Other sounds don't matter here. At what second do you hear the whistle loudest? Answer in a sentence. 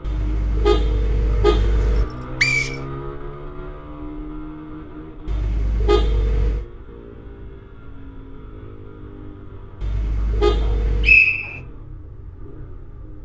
The loudest moment of the whistle is at 11 seconds.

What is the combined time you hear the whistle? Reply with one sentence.
The whistle can be heard for 2 seconds in total.